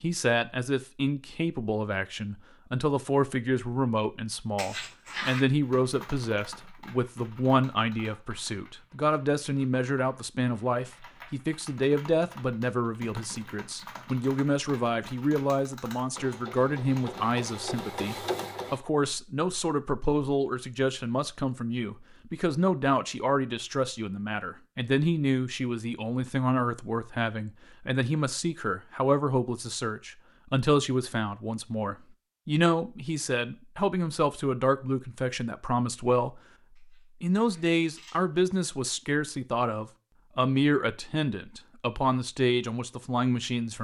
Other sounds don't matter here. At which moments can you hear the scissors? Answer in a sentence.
You can hear the scissors from 4.5 to 5.5 s and from 36.8 to 38.4 s.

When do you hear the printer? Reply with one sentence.
The printer can be heard from 16.1 to 18.9 s.